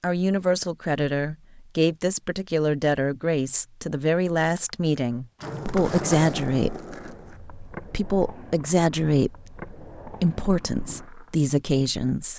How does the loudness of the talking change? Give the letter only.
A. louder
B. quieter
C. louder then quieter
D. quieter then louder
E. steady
E.